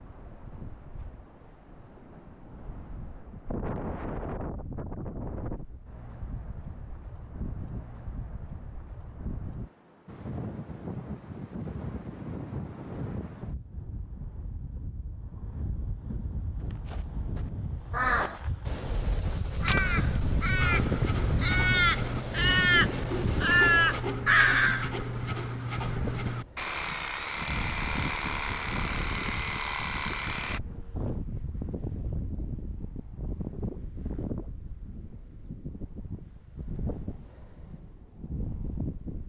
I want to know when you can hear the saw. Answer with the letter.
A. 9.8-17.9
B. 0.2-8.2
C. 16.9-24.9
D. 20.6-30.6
D.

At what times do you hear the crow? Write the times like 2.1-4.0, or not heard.
16.9-24.9.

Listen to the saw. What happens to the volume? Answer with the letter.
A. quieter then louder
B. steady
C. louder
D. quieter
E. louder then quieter
B.